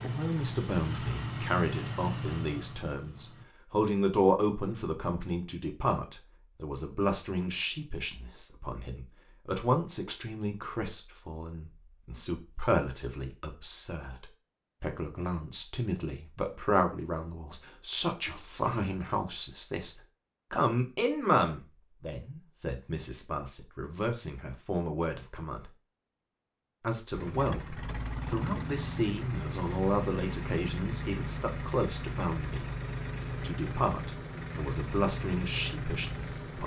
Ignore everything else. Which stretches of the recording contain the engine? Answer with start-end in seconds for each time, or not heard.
0.0-3.5, 27.1-36.6.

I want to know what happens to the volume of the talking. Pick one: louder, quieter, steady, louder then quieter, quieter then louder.
steady.